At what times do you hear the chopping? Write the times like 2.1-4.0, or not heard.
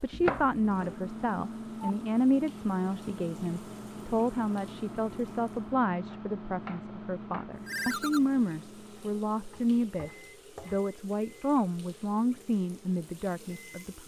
0.2-0.9, 6.1-7.5, 9.5-10.9.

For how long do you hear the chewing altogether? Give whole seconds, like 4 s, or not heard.
not heard.